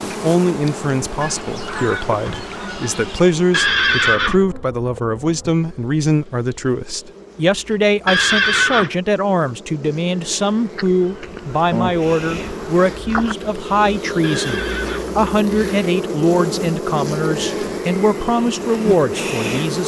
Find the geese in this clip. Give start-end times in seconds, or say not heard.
1.2-3.2, 10.8-13.3.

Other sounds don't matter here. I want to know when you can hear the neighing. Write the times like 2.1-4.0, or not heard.
3.5-4.5, 8.1-8.9, 14.2-15.2.